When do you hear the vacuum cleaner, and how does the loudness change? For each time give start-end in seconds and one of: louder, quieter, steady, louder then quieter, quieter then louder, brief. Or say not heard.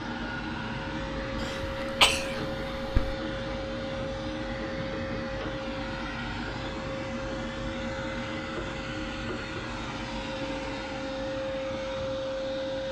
0.0-12.8 steady.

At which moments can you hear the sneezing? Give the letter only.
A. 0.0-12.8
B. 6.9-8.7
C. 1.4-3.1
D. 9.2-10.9
C.